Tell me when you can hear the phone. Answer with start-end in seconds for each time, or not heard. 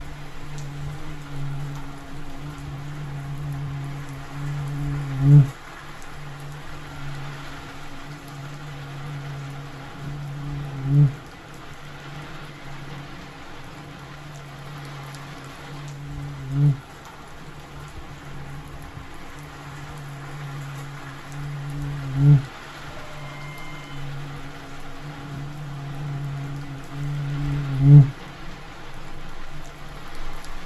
23.0-24.1.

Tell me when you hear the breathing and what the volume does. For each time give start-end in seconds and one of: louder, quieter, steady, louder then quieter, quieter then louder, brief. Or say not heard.
not heard.